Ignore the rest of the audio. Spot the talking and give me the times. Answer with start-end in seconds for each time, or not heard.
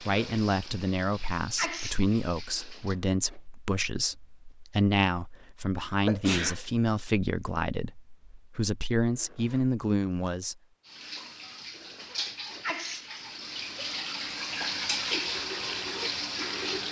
0.0-10.6.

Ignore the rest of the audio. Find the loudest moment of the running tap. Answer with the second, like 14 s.
15 s.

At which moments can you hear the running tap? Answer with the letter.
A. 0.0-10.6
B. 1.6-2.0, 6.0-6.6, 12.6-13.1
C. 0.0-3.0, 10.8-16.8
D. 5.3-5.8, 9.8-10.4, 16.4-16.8
C.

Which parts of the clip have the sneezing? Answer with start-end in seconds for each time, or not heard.
1.6-2.0, 6.0-6.6, 12.6-13.1.